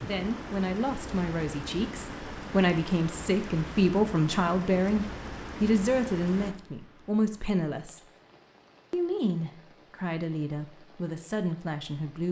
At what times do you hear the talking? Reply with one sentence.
You can hear the talking from 0.1 to 8.1 s and from 8.9 to 12.2 s.